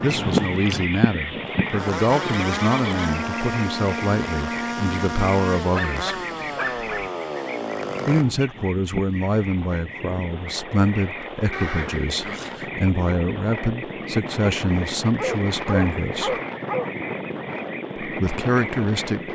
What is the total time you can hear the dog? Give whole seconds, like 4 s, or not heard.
3 s.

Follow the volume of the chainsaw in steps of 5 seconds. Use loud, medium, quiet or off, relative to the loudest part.
loud, loud, off, off.